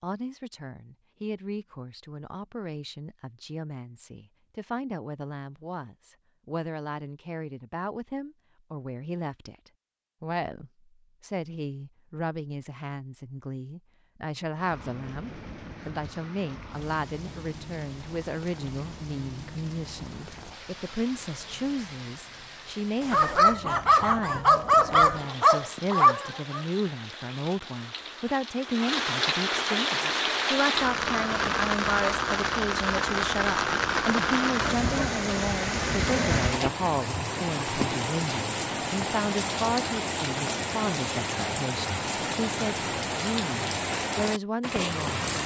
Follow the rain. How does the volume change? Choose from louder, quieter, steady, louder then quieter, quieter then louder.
louder.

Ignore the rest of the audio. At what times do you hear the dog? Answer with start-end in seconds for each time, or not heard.
23.1-26.6.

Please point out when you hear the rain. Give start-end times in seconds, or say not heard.
14.6-45.4.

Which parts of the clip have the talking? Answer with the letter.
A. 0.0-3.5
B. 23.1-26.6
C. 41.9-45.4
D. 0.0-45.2
D.